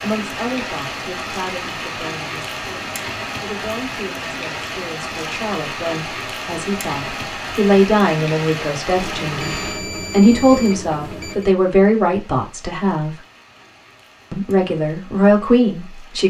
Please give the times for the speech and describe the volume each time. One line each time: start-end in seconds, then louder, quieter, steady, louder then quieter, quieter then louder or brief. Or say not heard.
0.0-13.2 louder
14.3-16.2 brief.